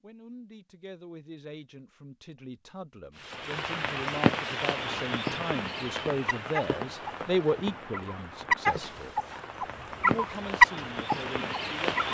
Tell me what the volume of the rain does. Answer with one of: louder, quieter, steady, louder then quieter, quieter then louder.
quieter then louder.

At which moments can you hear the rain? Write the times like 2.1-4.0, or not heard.
3.1-12.0.